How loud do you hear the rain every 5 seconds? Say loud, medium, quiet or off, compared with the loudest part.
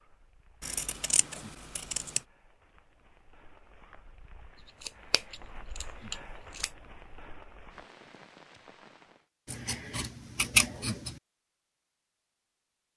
medium, loud, off.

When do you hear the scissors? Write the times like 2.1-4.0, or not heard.
0.6-2.2, 4.8-6.7, 9.4-11.2.